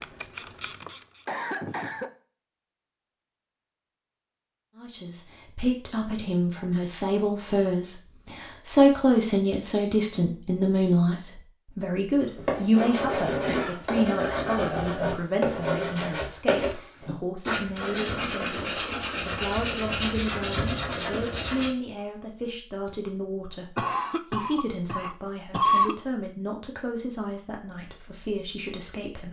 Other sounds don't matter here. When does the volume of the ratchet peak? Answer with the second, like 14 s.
1 s.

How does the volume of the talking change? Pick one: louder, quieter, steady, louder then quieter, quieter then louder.
quieter.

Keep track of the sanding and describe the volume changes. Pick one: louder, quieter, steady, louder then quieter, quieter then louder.
steady.